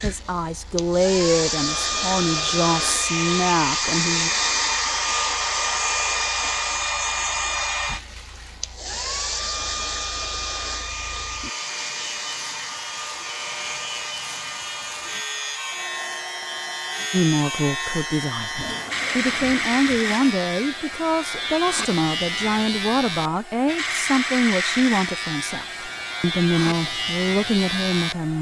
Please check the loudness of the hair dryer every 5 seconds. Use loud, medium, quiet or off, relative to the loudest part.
loud, loud, medium, quiet, quiet, quiet.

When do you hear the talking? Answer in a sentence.
You can hear the talking from 0.0 to 4.3 s and from 17.1 to 28.3 s.